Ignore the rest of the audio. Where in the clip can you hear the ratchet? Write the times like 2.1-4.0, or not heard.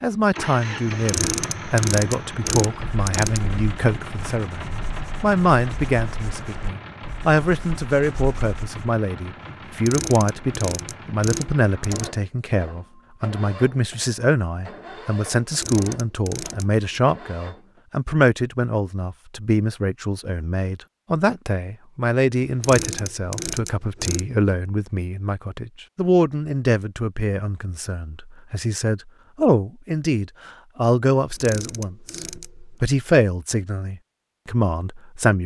0.9-3.6, 9.7-12.2, 15.4-17.0, 22.4-24.4, 31.1-32.6.